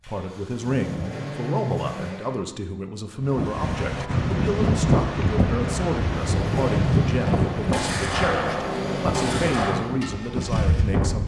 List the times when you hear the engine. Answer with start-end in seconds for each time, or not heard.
0.0-2.5, 6.2-11.2.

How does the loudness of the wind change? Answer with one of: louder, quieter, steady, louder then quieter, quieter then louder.
quieter.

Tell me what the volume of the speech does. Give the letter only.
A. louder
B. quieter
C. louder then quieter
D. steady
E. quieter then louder
D.